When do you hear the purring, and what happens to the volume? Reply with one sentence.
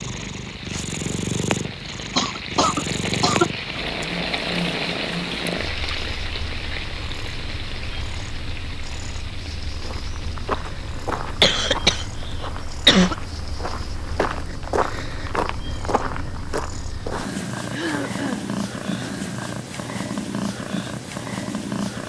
You can hear the purring from 0.0 to 22.0 s, getting quieter then louder.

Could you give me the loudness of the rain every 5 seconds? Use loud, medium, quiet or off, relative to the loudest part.
loud, loud, quiet, off, off.